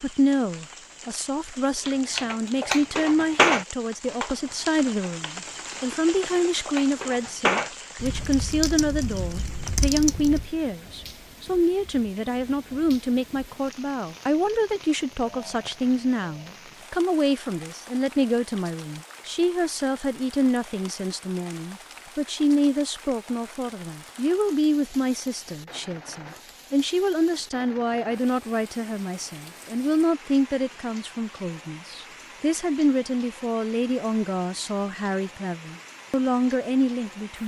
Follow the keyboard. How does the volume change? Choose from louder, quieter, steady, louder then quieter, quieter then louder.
quieter then louder.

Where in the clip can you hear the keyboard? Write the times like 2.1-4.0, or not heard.
1.9-10.5.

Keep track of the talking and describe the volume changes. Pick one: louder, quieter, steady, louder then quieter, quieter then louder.
steady.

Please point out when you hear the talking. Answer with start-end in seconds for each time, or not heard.
0.0-37.4.